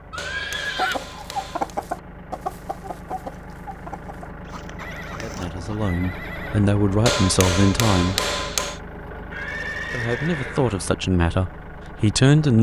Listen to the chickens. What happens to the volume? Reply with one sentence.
The loudness of the chickens goes down.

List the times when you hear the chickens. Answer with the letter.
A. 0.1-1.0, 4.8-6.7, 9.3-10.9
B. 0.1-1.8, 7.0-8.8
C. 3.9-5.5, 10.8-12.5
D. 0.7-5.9
D.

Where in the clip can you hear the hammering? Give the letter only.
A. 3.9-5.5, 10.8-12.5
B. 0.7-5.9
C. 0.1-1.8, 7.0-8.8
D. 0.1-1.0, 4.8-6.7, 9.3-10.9
C.